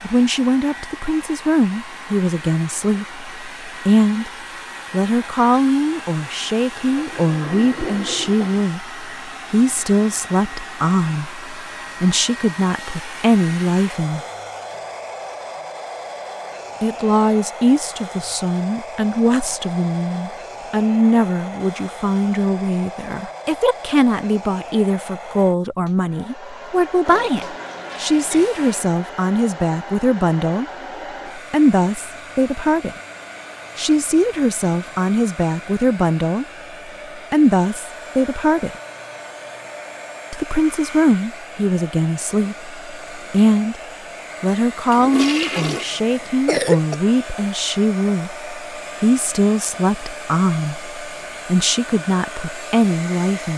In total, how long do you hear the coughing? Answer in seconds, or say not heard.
2 s.